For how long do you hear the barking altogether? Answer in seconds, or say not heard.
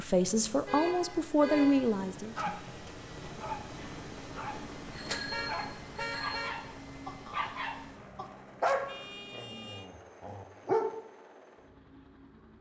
9 s.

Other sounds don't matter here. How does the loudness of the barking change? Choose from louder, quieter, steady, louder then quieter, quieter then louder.
louder then quieter.